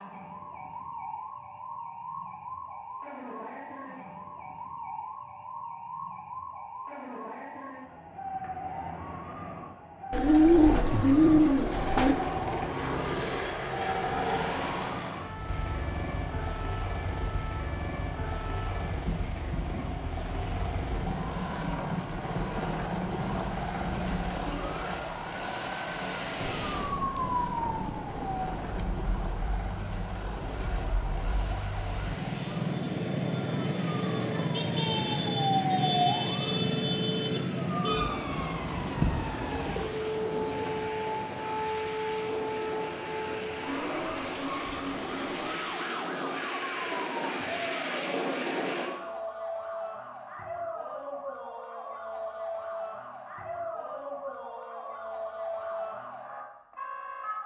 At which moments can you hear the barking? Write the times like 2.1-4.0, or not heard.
not heard.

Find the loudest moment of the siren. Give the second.
36 s.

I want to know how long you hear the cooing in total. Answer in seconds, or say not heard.
4 s.